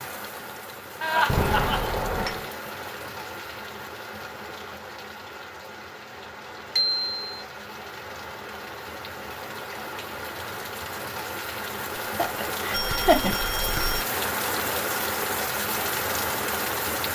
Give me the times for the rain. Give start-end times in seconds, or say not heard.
0.0-17.0.